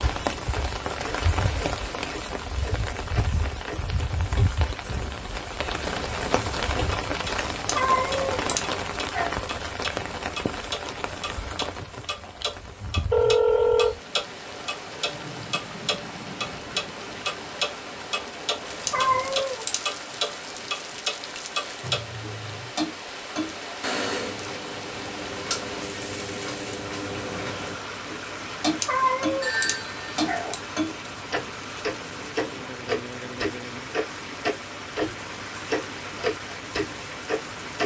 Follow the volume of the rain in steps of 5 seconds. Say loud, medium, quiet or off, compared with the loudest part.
loud, loud, medium, medium, medium, medium, medium, medium.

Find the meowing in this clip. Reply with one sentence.
The meowing can be heard from 7.7 to 9.3 s, from 18.9 to 19.9 s and from 28.8 to 30.6 s.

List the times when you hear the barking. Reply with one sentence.
The barking can't be heard in this clip.